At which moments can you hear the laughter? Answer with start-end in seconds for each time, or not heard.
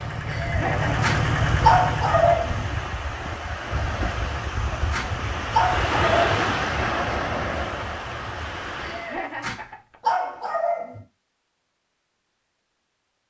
0.2-1.0, 8.8-9.9.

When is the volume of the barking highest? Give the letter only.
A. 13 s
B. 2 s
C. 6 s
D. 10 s
B.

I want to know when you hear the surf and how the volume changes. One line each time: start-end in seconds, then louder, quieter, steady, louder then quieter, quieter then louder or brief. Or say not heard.
0.0-9.3 louder then quieter.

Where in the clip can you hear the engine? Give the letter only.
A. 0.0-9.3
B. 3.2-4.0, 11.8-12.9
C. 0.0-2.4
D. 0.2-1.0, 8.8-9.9
C.